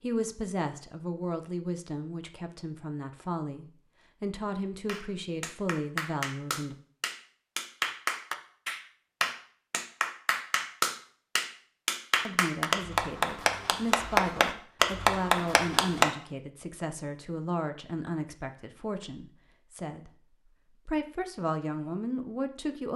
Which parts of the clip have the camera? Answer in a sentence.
The camera can't be heard in this clip.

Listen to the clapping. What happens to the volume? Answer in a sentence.
The loudness of the clapping goes up.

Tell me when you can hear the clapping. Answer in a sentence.
You can hear the clapping from 4.8 to 16.1 s.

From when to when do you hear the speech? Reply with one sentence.
You can hear the speech from 0.0 to 6.8 s and from 12.2 to 22.9 s.